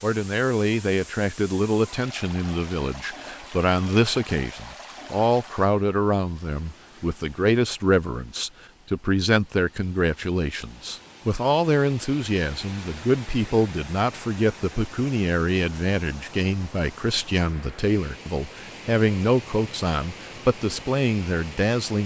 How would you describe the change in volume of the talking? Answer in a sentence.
The volume of the talking stays about the same.